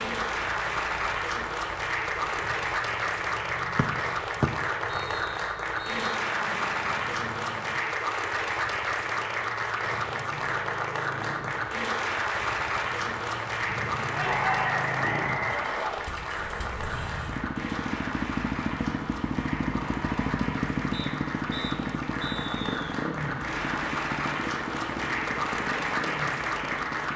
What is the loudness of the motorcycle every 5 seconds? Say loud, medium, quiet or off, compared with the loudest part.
quiet, quiet, medium, loud, loud, medium.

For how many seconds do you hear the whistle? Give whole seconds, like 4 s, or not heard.
6 s.